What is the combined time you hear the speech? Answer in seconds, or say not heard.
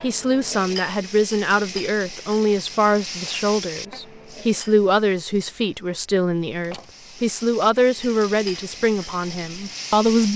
10 s.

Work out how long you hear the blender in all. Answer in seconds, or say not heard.
not heard.